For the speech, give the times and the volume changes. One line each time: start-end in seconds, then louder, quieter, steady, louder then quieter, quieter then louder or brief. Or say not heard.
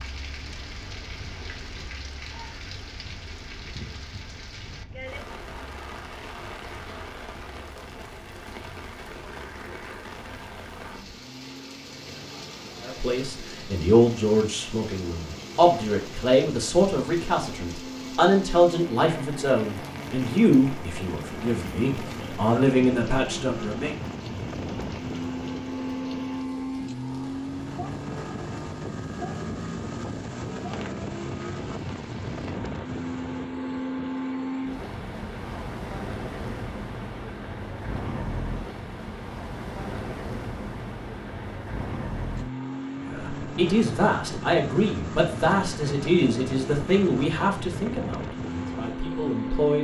12.8-23.9 steady
43.0-49.8 quieter.